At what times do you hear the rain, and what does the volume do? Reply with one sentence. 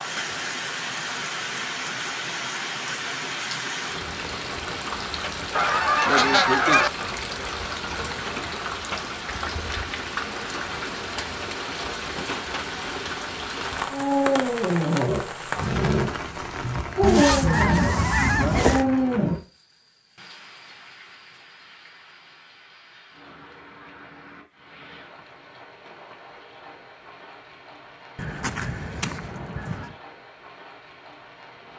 You can hear the rain from 0.0 to 31.7 s, getting quieter.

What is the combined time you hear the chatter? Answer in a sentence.
You can't hear the chatter here.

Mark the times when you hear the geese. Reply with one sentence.
The geese can be heard from 5.5 to 6.9 s, from 17.0 to 18.9 s and from 28.1 to 29.9 s.